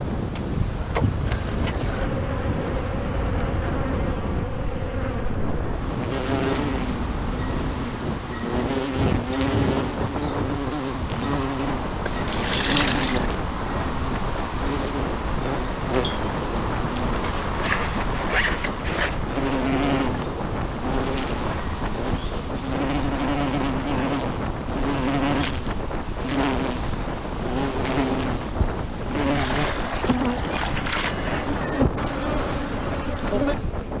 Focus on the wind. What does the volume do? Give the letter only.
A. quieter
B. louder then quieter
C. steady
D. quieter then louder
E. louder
C.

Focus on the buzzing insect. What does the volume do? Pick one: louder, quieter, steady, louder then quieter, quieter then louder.
steady.